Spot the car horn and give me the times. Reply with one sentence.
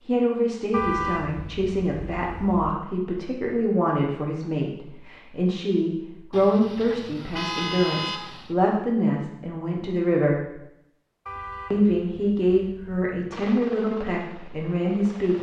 The car horn can be heard from 0.7 to 2.8 s, from 6.3 to 8.6 s and from 11.2 to 12.9 s.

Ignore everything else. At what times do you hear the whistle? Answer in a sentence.
You can't hear the whistle here.